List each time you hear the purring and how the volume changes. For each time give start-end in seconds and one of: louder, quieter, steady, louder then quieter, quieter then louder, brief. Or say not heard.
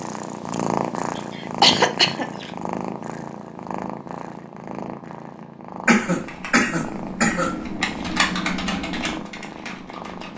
0.0-10.3 quieter.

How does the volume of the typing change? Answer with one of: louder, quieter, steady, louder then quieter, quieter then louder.
louder then quieter.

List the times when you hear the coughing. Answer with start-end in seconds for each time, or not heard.
1.1-2.5, 5.8-7.6.